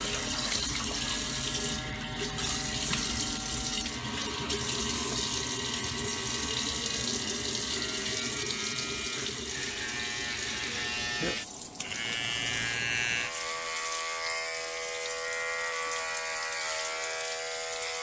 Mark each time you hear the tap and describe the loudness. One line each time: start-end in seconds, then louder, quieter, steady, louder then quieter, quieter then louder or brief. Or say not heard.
0.0-17.9 quieter.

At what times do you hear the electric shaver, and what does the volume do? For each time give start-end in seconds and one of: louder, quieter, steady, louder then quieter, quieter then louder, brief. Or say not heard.
0.1-17.9 louder.